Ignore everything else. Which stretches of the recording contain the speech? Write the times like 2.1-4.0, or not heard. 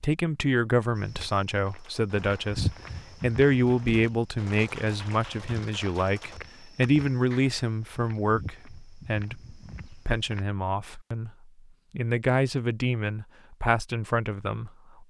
0.0-15.0.